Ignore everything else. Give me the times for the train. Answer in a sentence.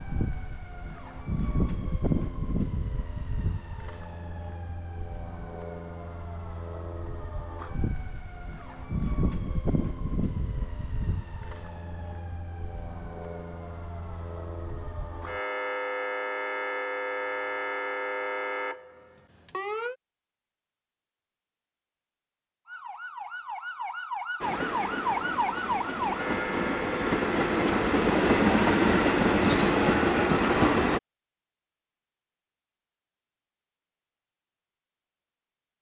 You can hear the train from 24.4 to 31.0 s.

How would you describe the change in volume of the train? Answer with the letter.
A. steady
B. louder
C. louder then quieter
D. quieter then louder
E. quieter
B.